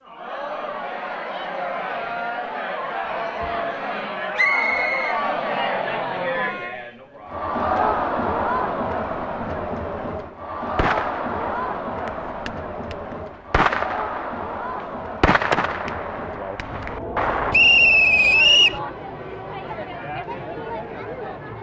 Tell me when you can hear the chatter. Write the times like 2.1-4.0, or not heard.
0.0-21.5.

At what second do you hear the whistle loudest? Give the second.
18 s.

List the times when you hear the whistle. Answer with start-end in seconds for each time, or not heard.
4.3-5.2, 17.5-18.8.